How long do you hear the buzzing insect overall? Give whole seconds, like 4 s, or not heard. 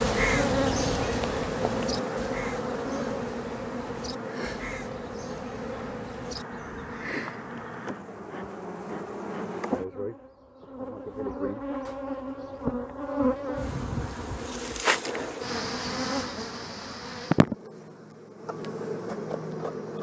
20 s.